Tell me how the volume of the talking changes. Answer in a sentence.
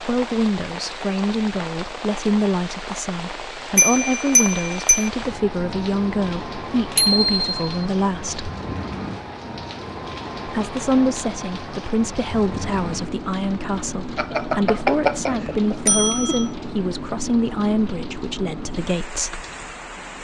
The volume of the talking stays about the same.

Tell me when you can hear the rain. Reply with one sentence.
You can hear the rain from 0.0 to 20.1 s.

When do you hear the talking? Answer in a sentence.
The talking can be heard from 0.0 to 8.5 s and from 10.4 to 19.4 s.